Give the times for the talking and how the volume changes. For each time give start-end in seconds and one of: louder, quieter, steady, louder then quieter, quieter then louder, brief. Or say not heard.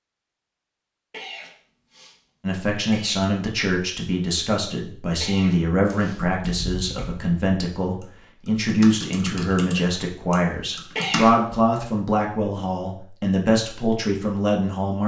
2.4-15.0 steady.